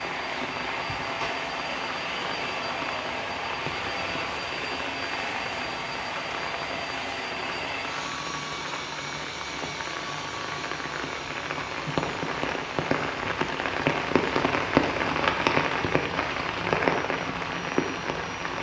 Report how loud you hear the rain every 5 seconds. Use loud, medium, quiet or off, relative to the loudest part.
medium, medium, loud, loud.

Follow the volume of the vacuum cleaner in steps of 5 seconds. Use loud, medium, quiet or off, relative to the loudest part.
loud, loud, medium, medium.